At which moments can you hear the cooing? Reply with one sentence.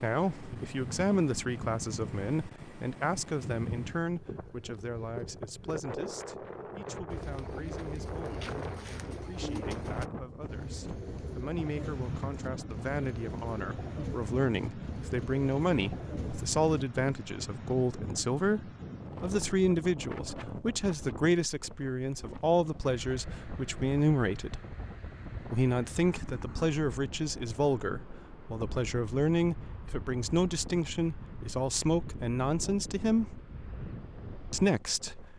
You can hear the cooing from 7.1 to 16.9 s.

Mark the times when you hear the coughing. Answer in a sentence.
The coughing can't be heard in this clip.